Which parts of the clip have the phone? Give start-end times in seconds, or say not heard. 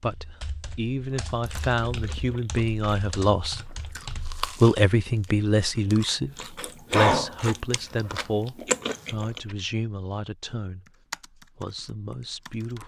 not heard.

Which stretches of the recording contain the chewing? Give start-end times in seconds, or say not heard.
1.1-9.6.